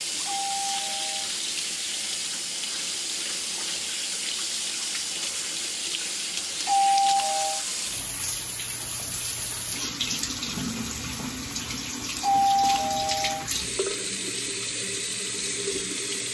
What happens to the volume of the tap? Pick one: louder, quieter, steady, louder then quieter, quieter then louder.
steady.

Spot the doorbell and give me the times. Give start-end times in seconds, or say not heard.
0.3-1.3, 6.6-7.6, 12.2-13.4.